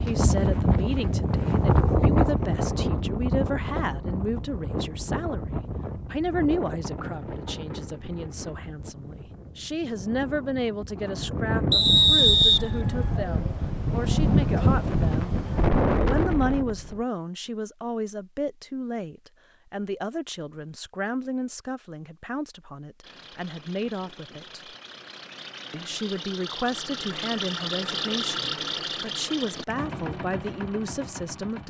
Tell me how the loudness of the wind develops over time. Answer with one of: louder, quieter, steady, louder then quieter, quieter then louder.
quieter then louder.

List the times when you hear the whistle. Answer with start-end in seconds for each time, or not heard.
11.7-13.1.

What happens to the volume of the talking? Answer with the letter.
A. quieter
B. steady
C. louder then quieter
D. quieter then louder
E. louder
B.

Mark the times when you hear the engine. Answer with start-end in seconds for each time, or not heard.
23.0-31.6.